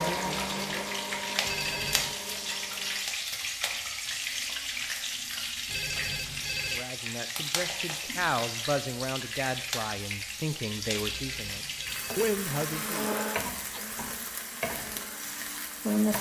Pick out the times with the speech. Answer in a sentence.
You can hear the speech from 6.7 to 13.1 s.